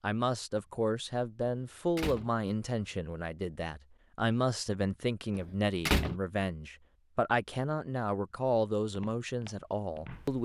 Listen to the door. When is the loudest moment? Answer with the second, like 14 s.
6 s.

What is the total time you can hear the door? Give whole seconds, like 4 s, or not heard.
2 s.